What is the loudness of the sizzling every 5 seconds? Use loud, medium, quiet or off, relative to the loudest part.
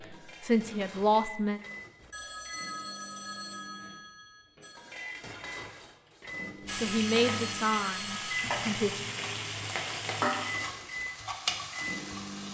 off, loud, loud.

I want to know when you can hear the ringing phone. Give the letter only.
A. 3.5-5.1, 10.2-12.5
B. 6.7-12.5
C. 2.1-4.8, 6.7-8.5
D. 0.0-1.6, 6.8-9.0
C.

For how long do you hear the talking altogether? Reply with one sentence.
You can hear the talking for 4 seconds altogether.